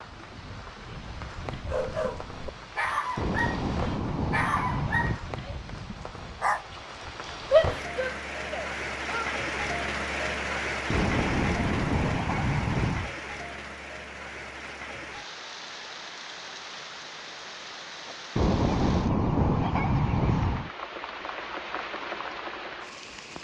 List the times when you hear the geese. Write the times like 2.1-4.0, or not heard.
3.1-5.2, 10.8-13.1, 18.4-20.7.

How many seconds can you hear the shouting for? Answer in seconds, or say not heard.
2 s.